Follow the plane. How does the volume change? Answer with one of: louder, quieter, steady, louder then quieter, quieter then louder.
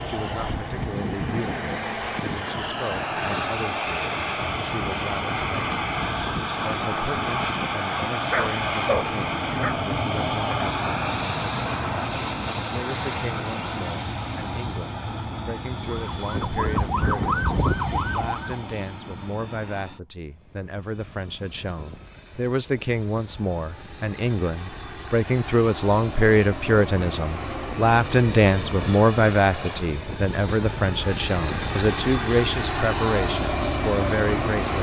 quieter then louder.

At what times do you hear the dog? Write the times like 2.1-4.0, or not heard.
8.3-9.8.